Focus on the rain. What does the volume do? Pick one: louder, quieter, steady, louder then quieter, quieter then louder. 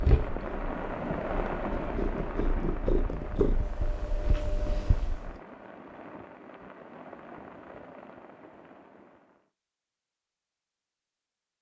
quieter.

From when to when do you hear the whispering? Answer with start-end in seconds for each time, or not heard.
not heard.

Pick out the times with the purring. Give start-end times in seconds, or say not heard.
0.0-5.3.